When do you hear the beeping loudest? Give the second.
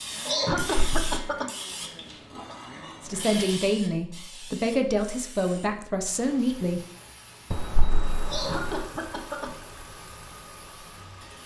8 s.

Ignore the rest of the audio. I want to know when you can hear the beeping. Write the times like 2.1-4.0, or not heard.
0.7-1.3, 7.5-8.8.